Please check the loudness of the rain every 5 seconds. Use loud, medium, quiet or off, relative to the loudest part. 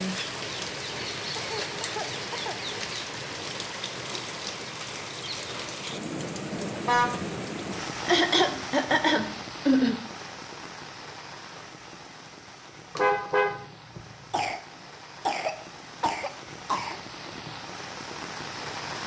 loud, loud, medium, medium.